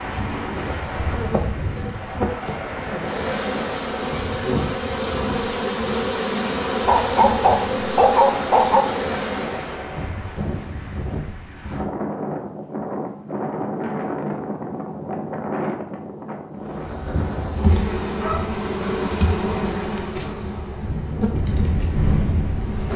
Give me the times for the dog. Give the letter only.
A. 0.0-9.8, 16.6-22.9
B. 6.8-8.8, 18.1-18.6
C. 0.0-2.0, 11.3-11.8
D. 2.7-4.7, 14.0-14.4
B.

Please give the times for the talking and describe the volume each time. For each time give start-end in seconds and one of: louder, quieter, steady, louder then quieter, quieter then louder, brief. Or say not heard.
not heard.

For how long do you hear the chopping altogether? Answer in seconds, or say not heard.
not heard.